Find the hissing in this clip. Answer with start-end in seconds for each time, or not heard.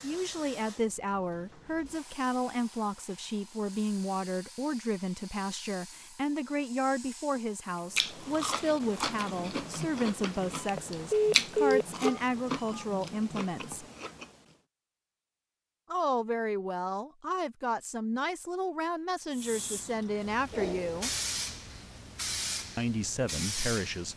0.0-8.0, 19.3-24.1.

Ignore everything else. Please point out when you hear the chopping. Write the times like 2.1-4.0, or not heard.
not heard.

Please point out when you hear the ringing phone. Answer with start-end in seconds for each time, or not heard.
10.6-12.8.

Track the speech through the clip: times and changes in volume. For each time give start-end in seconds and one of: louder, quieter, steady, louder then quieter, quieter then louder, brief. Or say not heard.
0.0-13.8 steady
15.9-21.1 steady
22.8-24.1 brief.